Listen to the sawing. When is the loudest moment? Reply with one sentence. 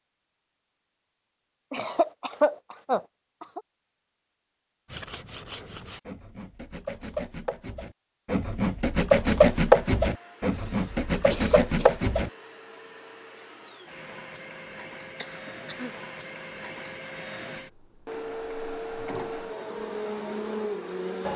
The volume of the sawing peaks at 10 seconds.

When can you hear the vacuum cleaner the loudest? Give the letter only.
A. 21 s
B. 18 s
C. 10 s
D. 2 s
A.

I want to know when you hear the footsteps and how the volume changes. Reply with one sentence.
You can't hear the footsteps here.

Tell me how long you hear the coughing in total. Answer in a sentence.
You can hear the coughing for 3 seconds altogether.